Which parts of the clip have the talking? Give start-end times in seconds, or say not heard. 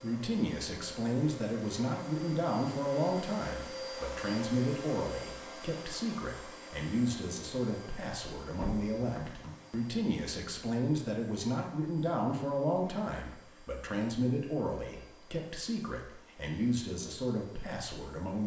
0.0-18.4.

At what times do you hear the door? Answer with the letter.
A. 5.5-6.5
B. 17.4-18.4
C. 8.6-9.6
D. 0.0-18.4
C.